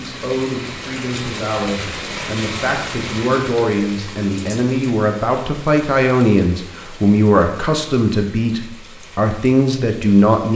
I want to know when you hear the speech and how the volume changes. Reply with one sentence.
You can hear the speech from 0.0 to 10.5 s, getting louder.